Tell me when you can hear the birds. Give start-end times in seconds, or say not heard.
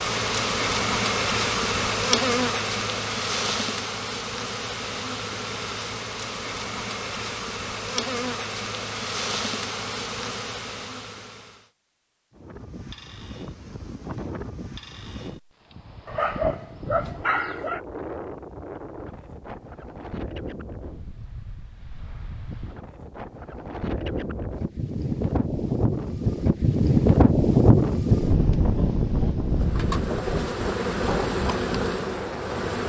not heard.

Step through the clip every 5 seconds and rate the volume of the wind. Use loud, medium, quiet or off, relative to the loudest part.
off, off, quiet, quiet, quiet, loud, medium.